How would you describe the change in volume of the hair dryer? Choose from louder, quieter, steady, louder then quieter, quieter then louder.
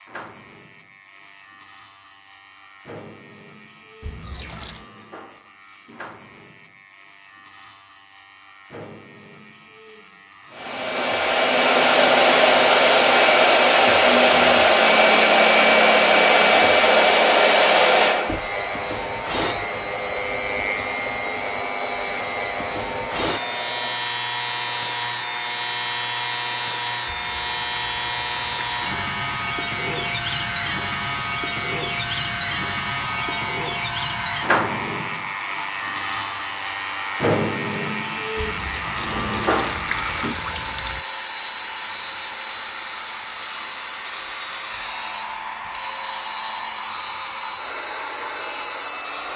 quieter.